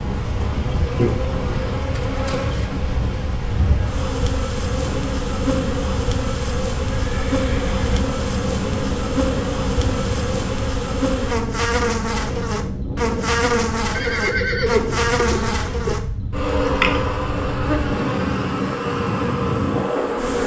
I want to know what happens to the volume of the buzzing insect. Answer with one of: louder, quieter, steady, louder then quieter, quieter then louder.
steady.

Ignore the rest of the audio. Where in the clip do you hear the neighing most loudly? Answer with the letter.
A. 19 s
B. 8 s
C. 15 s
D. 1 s
C.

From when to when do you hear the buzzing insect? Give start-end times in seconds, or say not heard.
0.0-20.4.